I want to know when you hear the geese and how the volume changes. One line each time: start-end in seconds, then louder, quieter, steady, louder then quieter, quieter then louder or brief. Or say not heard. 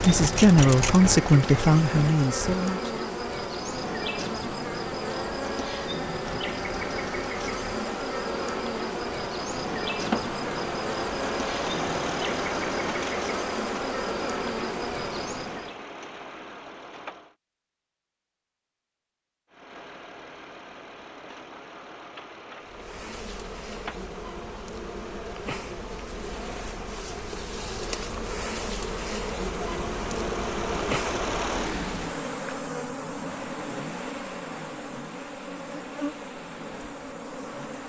not heard.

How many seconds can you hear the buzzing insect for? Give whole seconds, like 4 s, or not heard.
31 s.